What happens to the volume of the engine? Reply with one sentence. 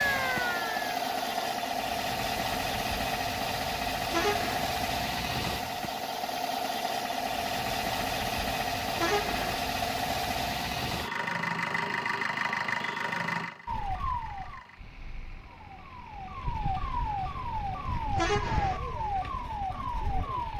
The loudness of the engine goes down.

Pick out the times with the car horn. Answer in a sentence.
The car horn can be heard from 4.1 to 4.7 s, from 8.9 to 9.6 s and from 18.1 to 18.8 s.